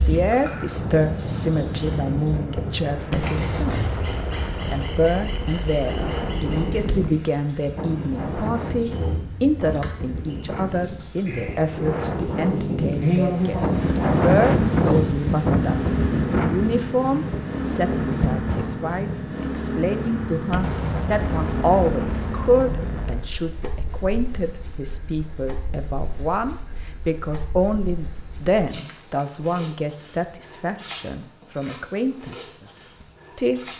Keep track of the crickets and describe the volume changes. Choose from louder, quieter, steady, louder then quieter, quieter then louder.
quieter.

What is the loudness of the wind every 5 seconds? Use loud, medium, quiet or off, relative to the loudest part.
medium, medium, loud, loud, off, off, off.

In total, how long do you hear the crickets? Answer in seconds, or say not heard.
34 s.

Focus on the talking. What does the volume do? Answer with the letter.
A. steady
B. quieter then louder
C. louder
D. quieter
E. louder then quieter
A.